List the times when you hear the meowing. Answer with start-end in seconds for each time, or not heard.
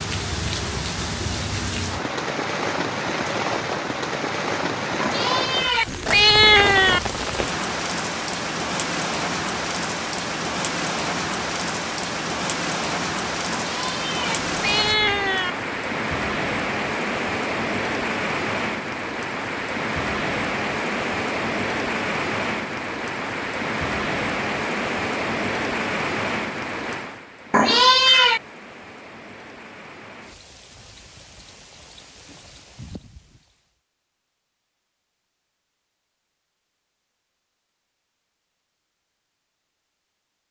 5.0-7.0, 13.5-15.5, 27.5-28.4.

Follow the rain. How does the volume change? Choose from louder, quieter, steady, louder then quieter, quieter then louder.
quieter.